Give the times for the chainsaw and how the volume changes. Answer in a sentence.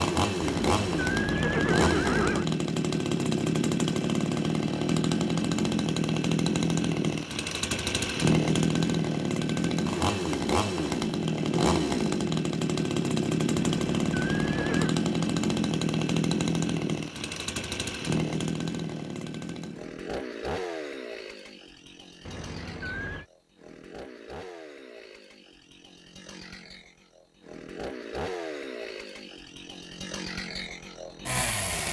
You can hear the chainsaw from 0.0 to 31.8 s, getting quieter.